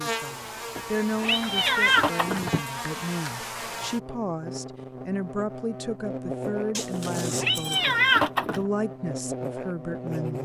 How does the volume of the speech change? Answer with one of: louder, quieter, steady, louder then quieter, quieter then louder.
steady.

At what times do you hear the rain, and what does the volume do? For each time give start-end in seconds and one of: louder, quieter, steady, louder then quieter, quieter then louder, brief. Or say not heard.
not heard.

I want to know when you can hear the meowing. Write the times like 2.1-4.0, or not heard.
0.8-2.6, 6.9-8.7.